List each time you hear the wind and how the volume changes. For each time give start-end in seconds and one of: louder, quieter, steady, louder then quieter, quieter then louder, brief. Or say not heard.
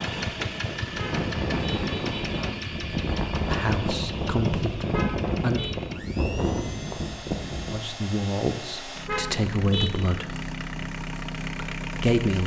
0.0-7.8 steady.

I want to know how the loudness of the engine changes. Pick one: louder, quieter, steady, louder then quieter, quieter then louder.
quieter then louder.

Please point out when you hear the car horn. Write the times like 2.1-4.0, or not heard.
0.8-2.4, 4.8-5.8, 9.0-9.9.